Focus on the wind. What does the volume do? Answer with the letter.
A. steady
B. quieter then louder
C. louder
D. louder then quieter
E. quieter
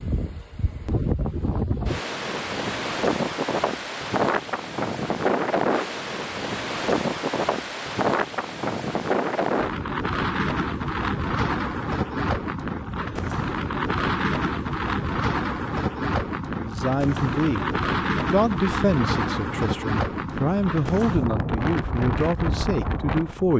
A.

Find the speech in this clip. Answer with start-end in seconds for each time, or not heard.
16.6-17.7, 18.3-23.5.